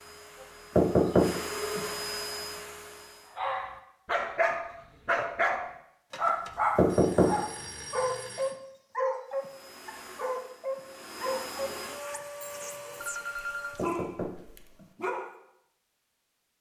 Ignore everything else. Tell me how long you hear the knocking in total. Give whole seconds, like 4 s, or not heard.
3 s.